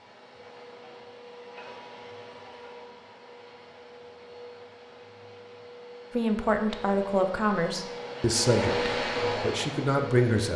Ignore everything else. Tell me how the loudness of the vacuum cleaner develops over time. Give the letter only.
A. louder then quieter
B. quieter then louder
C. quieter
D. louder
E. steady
D.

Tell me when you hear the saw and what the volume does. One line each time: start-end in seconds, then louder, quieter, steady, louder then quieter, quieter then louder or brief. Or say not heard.
not heard.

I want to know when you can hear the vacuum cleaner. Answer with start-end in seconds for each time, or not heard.
0.0-10.5.